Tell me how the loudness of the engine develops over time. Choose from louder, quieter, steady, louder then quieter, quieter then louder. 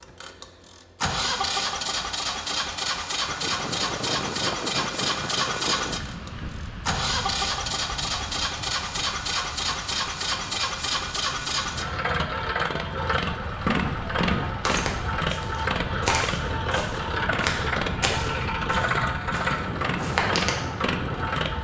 steady.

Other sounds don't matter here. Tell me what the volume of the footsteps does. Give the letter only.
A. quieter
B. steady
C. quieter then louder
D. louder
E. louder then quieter
A.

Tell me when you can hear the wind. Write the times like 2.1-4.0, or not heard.
3.2-21.6.